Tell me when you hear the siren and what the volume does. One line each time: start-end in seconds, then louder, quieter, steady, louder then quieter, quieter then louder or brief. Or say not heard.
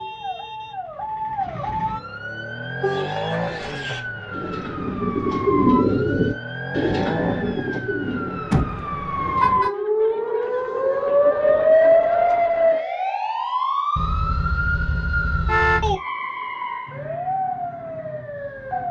0.0-18.8 louder then quieter.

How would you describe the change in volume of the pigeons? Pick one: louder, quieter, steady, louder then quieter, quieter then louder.
louder then quieter.